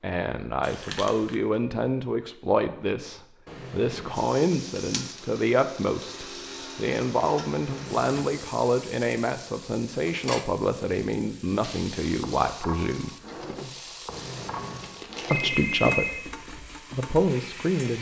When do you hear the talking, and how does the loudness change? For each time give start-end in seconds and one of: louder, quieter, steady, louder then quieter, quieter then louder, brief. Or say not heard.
0.0-13.1 steady
15.3-17.9 brief.